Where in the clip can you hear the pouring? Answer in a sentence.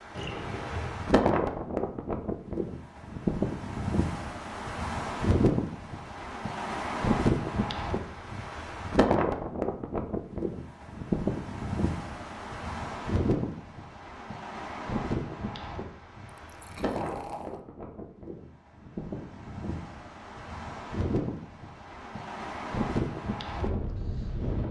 The pouring can be heard from 0.1 to 1.0 s and from 16.4 to 17.6 s.